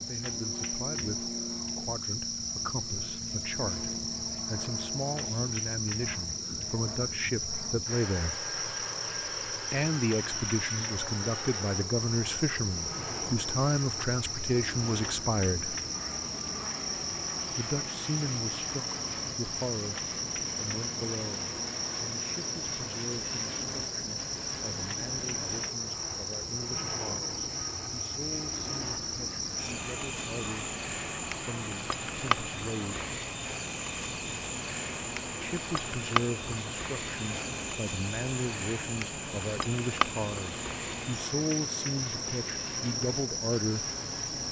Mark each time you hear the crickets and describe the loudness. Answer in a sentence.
The crickets can be heard from 0.0 to 44.4 s, at a steady volume.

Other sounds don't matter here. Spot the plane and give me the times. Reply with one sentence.
The plane can be heard from 0.0 to 44.4 s.